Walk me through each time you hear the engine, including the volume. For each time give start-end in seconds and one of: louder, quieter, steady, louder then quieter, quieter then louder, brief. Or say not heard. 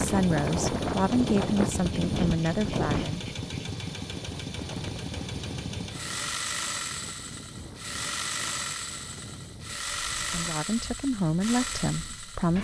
0.0-12.5 steady.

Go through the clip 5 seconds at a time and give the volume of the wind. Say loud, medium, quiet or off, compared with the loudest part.
loud, quiet, quiet.